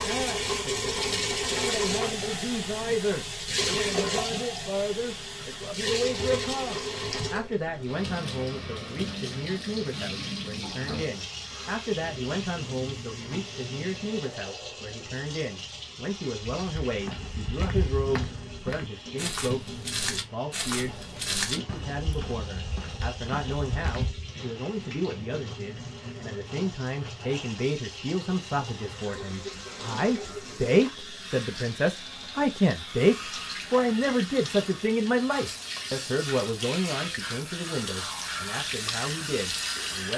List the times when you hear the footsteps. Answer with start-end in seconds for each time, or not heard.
16.4-24.3.